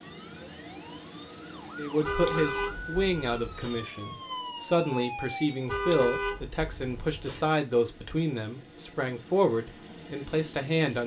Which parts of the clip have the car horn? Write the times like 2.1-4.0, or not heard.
2.0-3.9, 5.7-7.5.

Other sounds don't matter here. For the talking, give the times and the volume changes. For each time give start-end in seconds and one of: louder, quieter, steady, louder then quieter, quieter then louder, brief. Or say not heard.
1.8-11.0 steady.